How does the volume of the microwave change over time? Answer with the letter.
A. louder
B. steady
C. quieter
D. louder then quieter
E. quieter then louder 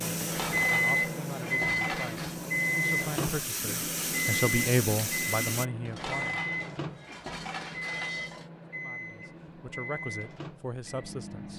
C.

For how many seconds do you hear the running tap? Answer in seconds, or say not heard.
6 s.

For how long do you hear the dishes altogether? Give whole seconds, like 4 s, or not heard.
5 s.